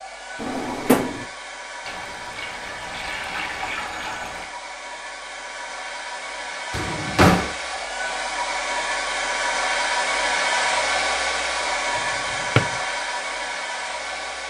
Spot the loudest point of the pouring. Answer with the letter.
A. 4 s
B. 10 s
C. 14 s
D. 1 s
A.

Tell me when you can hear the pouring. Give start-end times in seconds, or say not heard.
1.9-4.5.